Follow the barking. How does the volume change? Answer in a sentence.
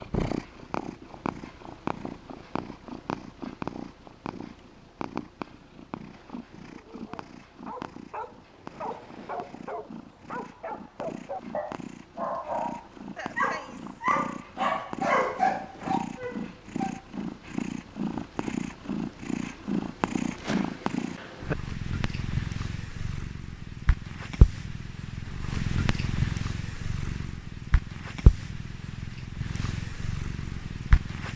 The volume of the barking goes up.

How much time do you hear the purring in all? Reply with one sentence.
You can hear the purring for 31 seconds altogether.